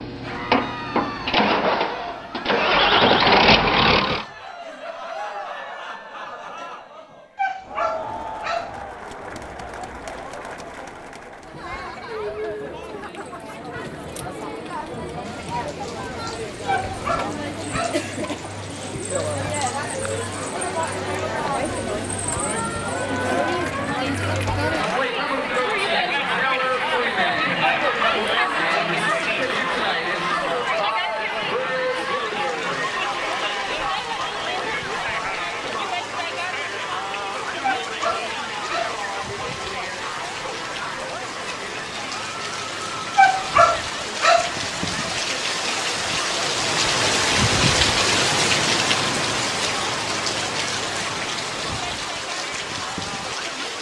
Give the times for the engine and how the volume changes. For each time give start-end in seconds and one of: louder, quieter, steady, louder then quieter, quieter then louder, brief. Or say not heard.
0.0-4.2 quieter then louder.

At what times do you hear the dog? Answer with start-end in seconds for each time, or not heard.
7.3-8.8, 16.6-18.0, 27.9-28.9, 37.6-39.0, 43.1-44.5.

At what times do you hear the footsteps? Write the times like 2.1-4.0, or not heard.
not heard.